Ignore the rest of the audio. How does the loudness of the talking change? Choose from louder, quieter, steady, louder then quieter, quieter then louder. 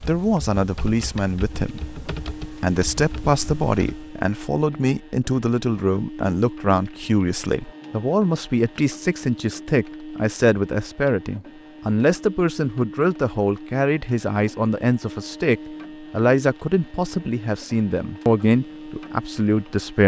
steady.